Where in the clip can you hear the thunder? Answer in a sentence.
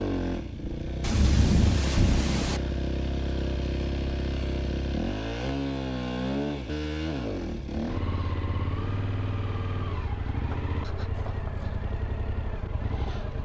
The thunder can be heard from 1.0 to 2.6 s.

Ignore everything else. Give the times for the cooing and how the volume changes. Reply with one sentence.
You can't hear the cooing here.